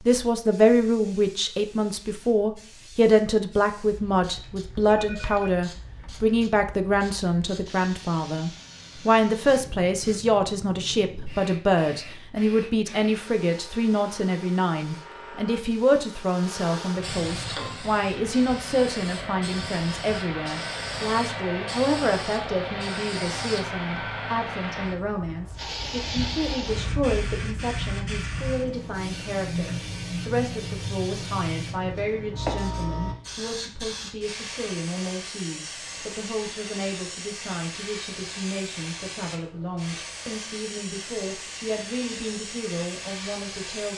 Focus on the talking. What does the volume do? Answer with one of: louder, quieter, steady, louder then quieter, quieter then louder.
quieter.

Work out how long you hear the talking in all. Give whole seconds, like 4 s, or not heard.
44 s.